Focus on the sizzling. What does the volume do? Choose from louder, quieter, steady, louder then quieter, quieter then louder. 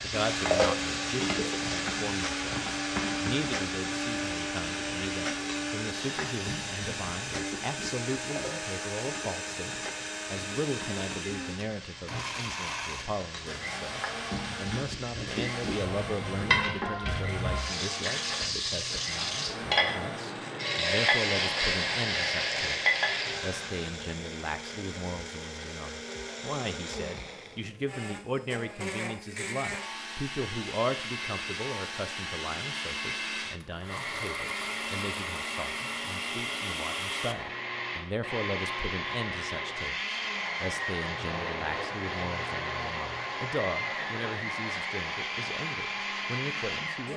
quieter then louder.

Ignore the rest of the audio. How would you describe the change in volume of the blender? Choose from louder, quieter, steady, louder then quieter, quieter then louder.
quieter then louder.